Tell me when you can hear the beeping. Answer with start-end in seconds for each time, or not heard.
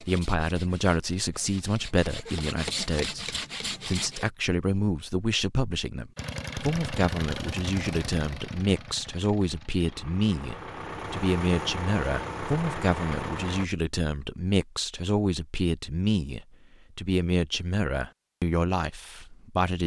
not heard.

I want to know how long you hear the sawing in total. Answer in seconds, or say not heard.
4 s.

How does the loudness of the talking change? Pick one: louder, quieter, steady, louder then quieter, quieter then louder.
steady.